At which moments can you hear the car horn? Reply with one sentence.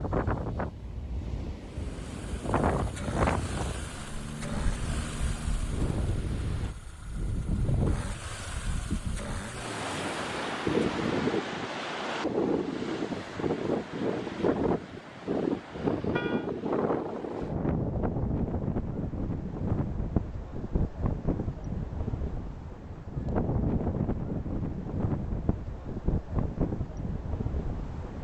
You can hear the car horn from 15.8 to 16.5 s.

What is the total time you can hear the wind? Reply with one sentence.
You can hear the wind for 28 seconds altogether.